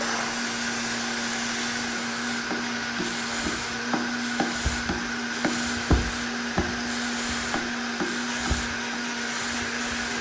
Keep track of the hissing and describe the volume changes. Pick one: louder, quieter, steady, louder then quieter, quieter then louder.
steady.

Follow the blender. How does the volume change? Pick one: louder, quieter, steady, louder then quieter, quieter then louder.
steady.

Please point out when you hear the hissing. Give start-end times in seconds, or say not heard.
0.0-10.1.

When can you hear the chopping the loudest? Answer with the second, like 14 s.
6 s.